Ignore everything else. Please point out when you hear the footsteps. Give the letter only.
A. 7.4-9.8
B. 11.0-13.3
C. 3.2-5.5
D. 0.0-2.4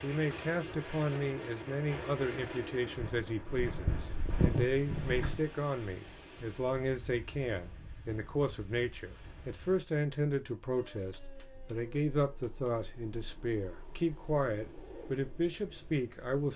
C.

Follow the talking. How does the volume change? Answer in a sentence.
The loudness of the talking stays about the same.